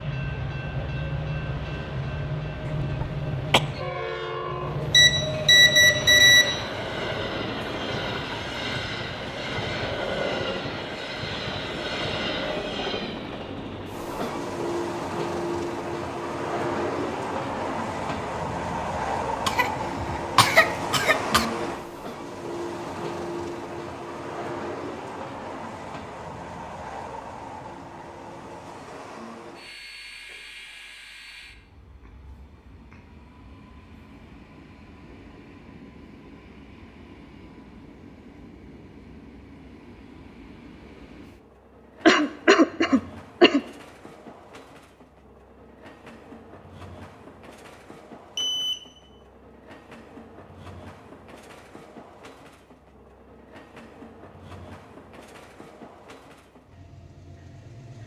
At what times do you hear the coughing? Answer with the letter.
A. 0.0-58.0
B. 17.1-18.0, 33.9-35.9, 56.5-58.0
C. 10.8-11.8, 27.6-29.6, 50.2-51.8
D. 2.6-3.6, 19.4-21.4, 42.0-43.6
D.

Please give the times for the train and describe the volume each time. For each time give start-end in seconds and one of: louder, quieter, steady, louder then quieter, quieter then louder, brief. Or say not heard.
0.0-58.0 quieter.